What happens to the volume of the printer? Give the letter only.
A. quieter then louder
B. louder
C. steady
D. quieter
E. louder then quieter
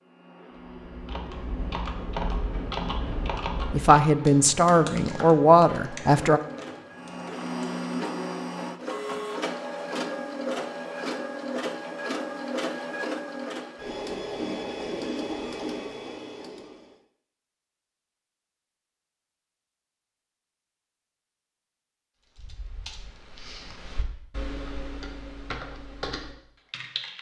B.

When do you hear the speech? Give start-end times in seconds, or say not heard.
3.5-6.4.